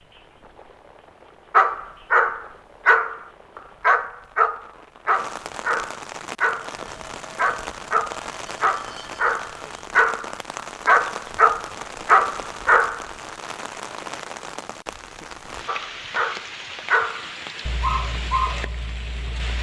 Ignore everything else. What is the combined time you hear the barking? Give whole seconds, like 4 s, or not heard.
15 s.